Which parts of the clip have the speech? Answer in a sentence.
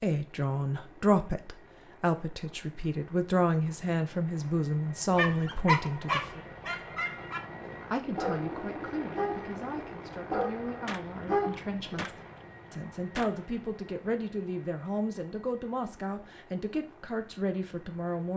You can hear the speech from 0.0 to 6.4 s and from 7.9 to 18.3 s.